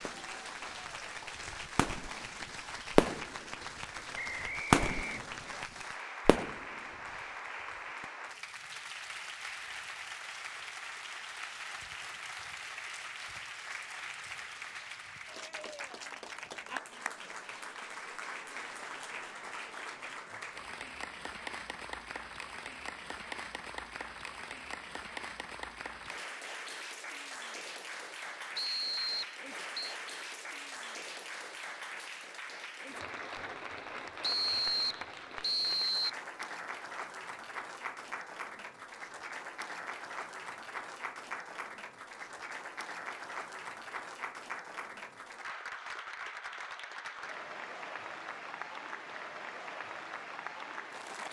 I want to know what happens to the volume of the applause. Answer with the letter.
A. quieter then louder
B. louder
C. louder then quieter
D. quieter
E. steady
E.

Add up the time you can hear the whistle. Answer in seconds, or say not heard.
5 s.